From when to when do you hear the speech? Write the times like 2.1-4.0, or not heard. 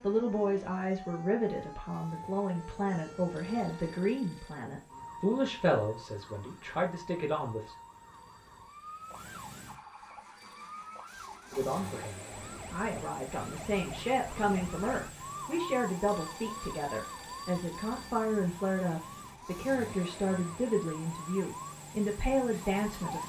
0.0-7.8, 11.5-23.2.